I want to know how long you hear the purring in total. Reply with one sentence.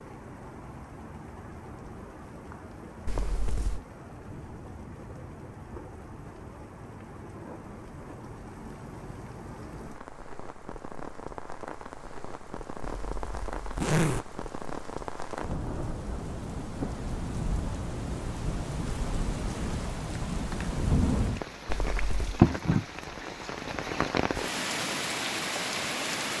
The purring can't be heard in this clip.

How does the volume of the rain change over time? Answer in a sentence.
The volume of the rain goes up.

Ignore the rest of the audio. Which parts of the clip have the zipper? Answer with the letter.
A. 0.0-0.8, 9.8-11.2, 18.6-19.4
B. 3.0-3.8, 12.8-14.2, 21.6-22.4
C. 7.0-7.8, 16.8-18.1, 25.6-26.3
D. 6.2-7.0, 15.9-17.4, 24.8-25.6
B.